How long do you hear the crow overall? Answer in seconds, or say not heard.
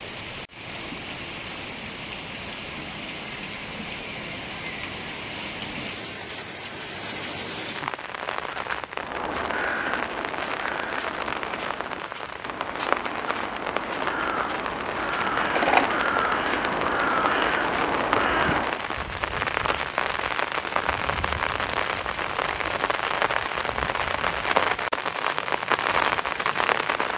10 s.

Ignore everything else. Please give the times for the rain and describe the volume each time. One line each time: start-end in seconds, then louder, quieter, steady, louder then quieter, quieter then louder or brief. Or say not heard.
0.0-27.1 louder.